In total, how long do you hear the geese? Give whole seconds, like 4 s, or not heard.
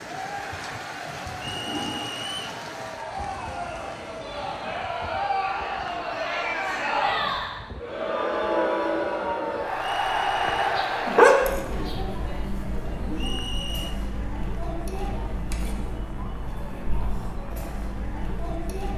not heard.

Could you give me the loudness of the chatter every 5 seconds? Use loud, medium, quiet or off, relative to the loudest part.
medium, loud, loud, medium.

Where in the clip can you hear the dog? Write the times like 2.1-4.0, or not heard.
10.8-11.9.